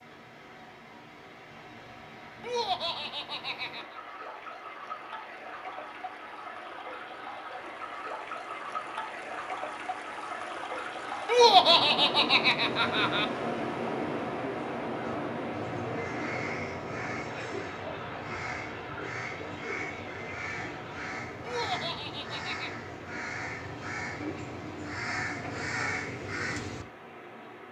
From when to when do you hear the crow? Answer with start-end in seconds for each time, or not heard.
15.0-26.9.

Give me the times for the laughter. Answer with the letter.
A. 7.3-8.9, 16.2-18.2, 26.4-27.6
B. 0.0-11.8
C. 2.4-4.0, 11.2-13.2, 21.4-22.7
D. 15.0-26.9
C.